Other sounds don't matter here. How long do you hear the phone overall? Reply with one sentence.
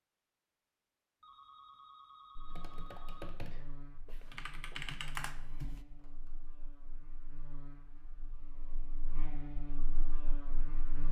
The phone can be heard for 3 seconds in total.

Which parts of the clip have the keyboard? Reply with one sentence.
The keyboard can be heard from 2.5 to 5.8 s.